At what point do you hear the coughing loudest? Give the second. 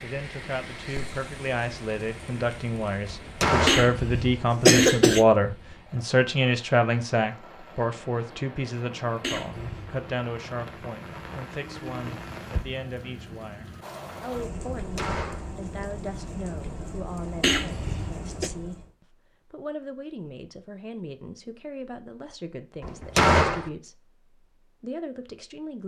5 s.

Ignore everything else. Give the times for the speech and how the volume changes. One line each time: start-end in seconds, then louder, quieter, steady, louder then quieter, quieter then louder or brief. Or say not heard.
0.0-25.8 quieter.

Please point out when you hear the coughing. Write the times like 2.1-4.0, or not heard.
3.6-5.2, 9.2-10.0, 17.4-18.5.